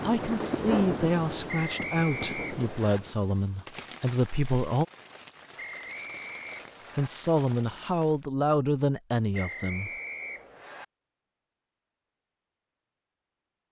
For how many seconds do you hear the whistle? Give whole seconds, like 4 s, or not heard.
5 s.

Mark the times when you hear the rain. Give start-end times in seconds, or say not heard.
0.0-8.2.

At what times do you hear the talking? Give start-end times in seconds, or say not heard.
0.0-4.8, 7.0-9.9.